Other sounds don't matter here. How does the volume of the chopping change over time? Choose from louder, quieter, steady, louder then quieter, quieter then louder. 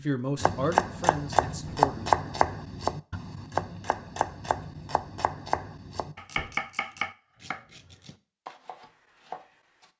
quieter.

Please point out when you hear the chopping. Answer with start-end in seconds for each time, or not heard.
0.4-9.8.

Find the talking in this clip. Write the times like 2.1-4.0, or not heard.
0.0-2.1.